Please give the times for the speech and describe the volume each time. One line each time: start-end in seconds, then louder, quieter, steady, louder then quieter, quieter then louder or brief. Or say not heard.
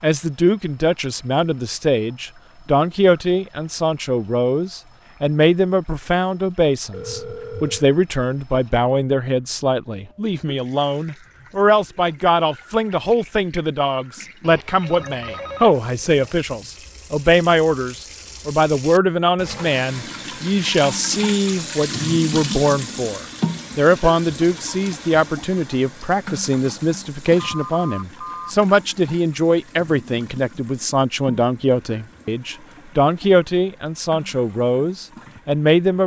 0.0-36.0 steady.